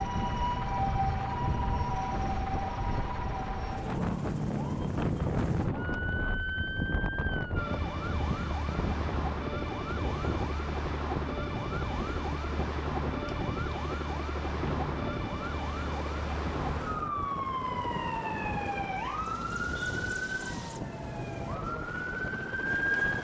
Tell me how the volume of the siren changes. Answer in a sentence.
The volume of the siren stays about the same.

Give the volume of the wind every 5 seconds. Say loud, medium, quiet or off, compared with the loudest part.
loud, loud, loud, medium, medium.